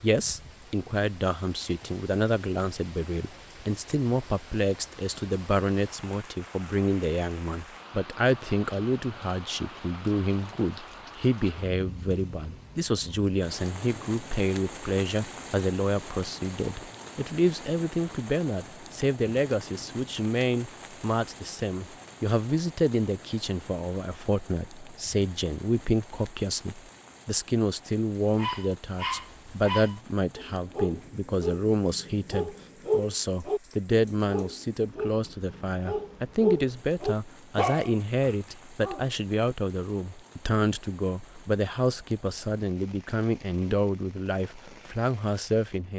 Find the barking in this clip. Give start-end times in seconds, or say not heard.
28.4-39.1.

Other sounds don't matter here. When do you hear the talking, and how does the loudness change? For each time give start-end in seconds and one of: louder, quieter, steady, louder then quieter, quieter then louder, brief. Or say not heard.
0.0-45.9 steady.